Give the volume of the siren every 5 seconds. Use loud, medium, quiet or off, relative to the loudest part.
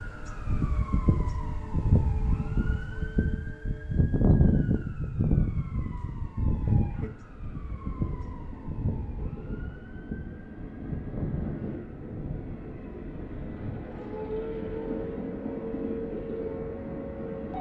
loud, loud, medium, medium.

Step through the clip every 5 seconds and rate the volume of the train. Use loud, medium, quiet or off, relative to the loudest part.
quiet, medium, loud, loud.